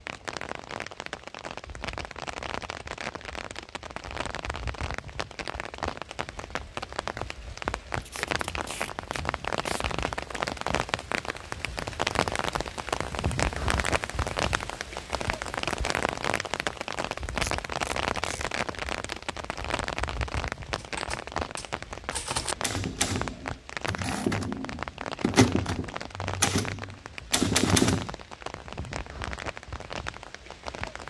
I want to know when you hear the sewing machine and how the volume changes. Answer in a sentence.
You can't hear the sewing machine here.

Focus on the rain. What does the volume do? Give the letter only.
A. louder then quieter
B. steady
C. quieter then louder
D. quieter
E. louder
A.